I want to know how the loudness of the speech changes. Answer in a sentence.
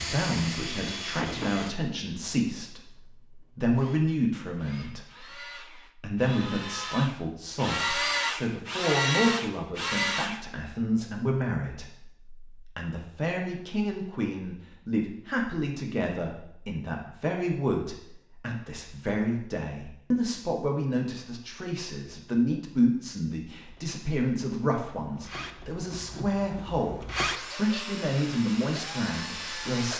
The loudness of the speech stays about the same.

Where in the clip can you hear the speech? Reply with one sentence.
The speech can be heard from 0.1 to 29.9 s.